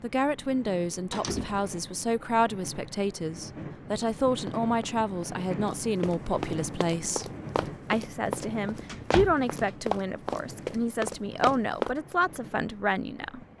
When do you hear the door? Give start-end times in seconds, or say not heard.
1.1-1.7, 8.8-9.8.